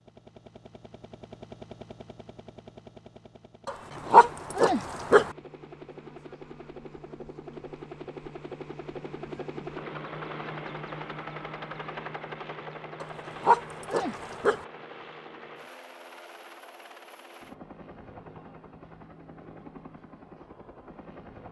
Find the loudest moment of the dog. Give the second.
4 s.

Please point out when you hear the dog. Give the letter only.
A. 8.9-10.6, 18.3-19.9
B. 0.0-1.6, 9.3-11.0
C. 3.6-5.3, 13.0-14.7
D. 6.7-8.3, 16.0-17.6
C.